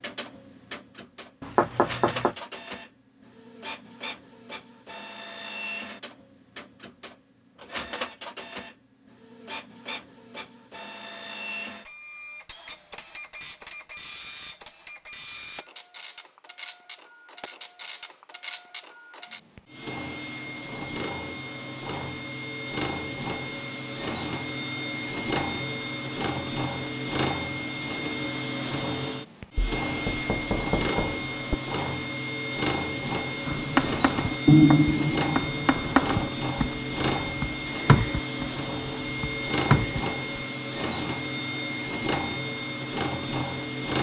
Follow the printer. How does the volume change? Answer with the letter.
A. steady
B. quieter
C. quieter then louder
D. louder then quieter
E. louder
E.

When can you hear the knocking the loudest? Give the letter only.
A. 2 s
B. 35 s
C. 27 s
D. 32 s
A.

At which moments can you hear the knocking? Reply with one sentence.
You can hear the knocking from 1.4 to 2.4 s and from 29.6 to 31.6 s.